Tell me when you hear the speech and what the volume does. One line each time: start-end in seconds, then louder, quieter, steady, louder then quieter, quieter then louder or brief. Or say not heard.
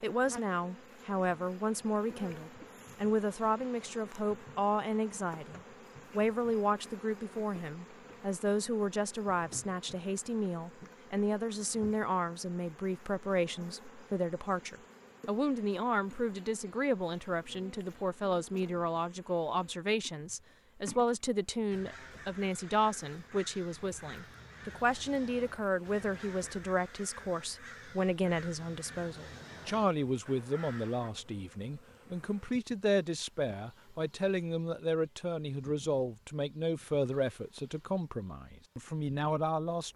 0.0-39.9 steady.